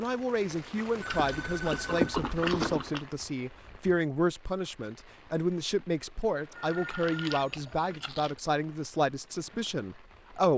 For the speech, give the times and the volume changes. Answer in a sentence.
You can hear the speech from 0.0 to 10.5 s, at a steady volume.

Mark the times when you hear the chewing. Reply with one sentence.
You can hear the chewing from 1.1 to 3.0 s and from 6.7 to 8.3 s.